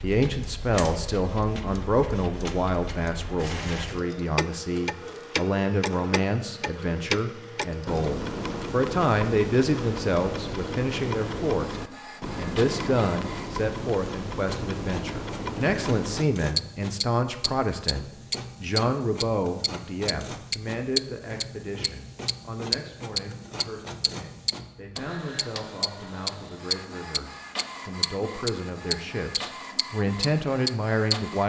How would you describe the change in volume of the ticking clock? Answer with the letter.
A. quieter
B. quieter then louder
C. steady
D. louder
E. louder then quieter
D.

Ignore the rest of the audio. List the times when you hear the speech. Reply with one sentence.
The speech can be heard from 0.0 to 31.4 s.